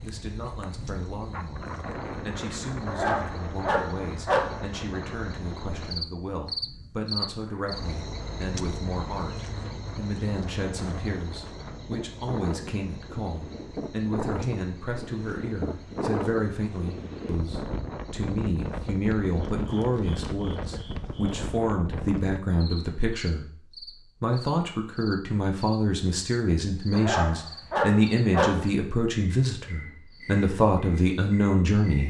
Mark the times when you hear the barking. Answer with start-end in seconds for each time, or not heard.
2.9-4.6, 26.9-28.6.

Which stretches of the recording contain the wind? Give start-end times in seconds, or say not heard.
0.0-22.4.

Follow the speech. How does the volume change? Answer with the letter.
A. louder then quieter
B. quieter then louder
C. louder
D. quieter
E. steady
C.